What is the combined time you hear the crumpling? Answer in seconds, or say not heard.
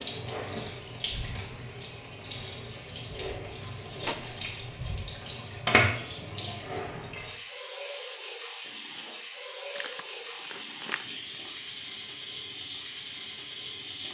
2 s.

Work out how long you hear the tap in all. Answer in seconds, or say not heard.
14 s.